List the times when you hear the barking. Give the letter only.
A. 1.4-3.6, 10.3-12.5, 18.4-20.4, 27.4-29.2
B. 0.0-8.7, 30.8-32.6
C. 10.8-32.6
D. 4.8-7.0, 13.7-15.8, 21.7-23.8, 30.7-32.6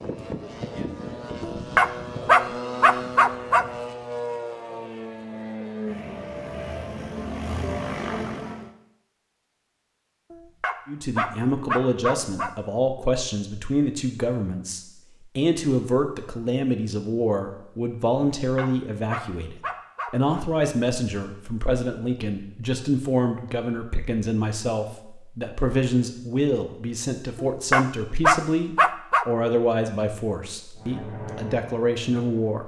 A.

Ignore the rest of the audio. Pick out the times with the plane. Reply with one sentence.
You can hear the plane from 0.0 to 8.7 s and from 30.8 to 32.6 s.